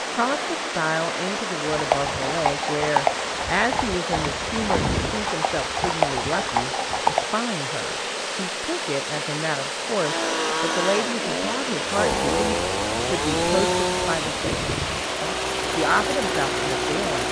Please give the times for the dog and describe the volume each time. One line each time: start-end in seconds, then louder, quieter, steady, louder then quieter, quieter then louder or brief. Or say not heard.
not heard.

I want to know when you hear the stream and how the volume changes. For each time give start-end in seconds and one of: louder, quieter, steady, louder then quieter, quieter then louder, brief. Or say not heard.
0.0-17.2 steady.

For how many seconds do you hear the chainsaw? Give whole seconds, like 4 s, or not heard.
7 s.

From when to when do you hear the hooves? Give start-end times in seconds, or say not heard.
1.7-7.3.